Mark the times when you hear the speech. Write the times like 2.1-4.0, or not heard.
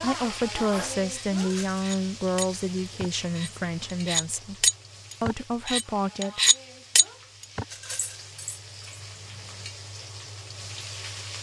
0.0-6.4.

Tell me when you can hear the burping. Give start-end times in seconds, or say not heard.
not heard.